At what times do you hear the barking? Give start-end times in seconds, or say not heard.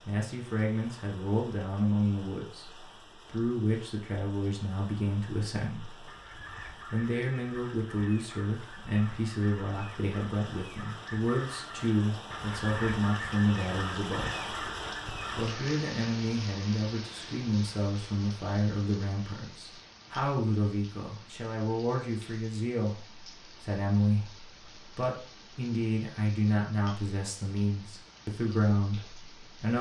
not heard.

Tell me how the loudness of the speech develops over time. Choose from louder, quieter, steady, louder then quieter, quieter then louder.
steady.